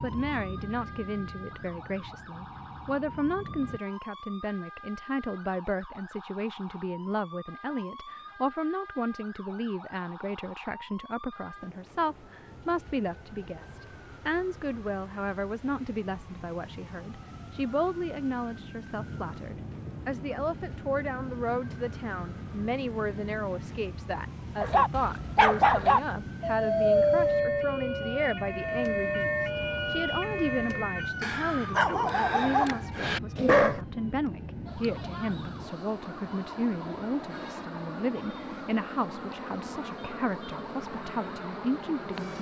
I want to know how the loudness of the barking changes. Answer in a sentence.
The loudness of the barking goes down, then up.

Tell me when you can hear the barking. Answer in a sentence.
You can hear the barking from 24.6 to 33.8 s.